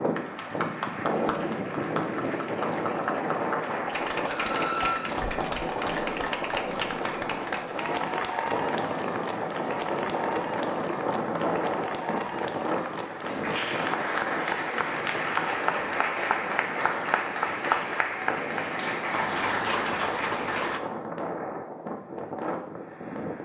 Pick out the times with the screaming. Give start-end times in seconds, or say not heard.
4.2-5.2.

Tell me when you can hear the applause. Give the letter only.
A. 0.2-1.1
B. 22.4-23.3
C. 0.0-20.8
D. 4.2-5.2
C.